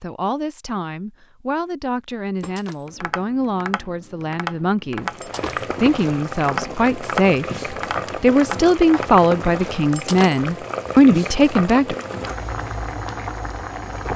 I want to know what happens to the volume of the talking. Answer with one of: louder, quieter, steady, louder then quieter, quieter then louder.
louder.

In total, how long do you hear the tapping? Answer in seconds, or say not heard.
7 s.